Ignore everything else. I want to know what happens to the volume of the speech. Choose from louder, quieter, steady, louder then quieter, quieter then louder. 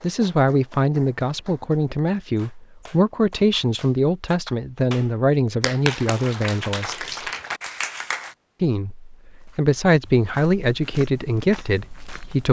steady.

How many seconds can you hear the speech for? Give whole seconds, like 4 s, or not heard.
11 s.